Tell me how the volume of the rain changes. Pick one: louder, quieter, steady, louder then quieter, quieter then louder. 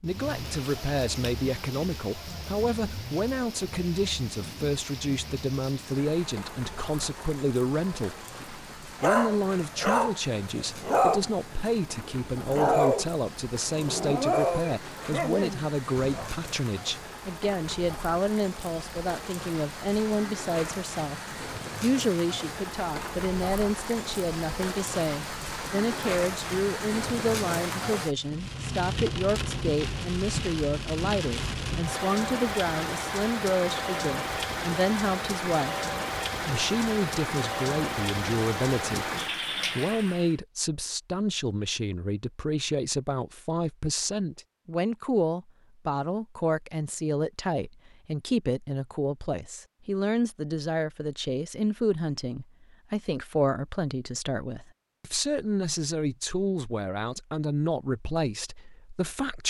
louder.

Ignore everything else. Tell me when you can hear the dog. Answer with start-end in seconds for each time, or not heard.
7.8-16.4.